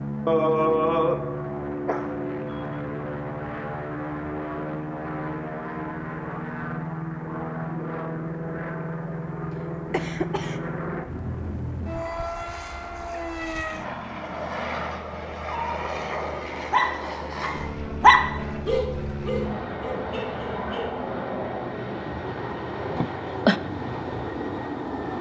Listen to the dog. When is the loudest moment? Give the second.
18 s.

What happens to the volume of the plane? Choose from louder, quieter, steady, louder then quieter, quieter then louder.
steady.